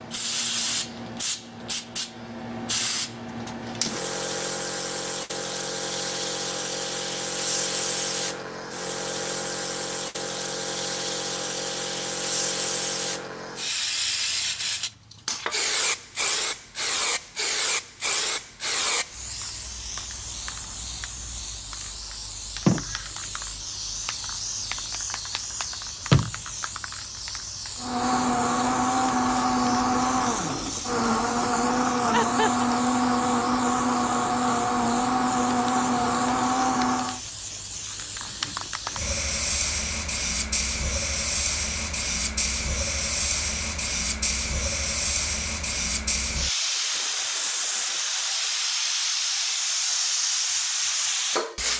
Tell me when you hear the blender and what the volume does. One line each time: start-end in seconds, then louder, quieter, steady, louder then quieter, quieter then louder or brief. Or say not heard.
27.8-37.2 steady.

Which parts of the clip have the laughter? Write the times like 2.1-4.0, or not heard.
32.1-32.7.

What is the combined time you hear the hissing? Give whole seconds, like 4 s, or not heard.
52 s.